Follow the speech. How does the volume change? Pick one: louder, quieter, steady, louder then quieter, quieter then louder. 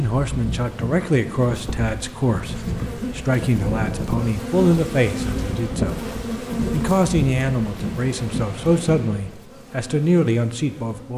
steady.